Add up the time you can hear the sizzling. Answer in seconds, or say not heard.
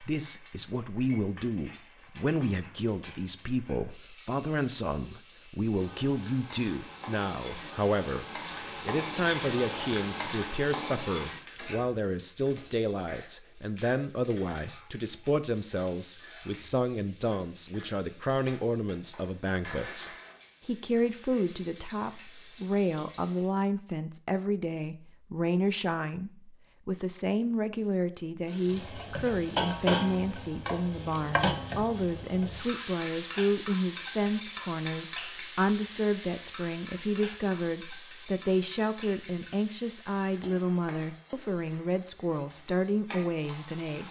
39 s.